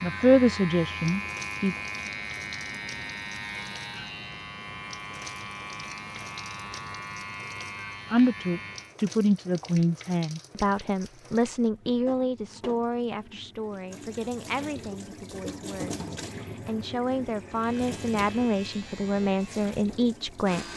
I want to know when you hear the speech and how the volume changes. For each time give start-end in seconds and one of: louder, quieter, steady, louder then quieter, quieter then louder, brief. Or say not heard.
0.0-1.8 brief
8.1-20.6 quieter then louder.